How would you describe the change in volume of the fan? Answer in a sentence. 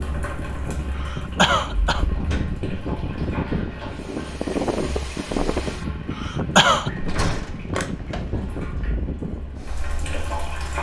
The loudness of the fan goes up, then down.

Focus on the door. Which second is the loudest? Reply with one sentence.
The volume of the door peaks at 7 seconds.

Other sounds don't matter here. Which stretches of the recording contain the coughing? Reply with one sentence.
The coughing can be heard from 0.9 to 2.0 s and from 6.1 to 6.9 s.